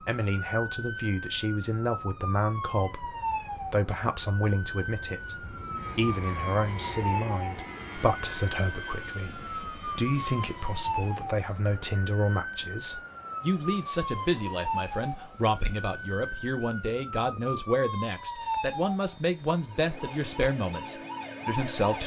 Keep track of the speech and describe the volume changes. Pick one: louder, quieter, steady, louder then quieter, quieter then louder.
steady.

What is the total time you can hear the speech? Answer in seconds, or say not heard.
22 s.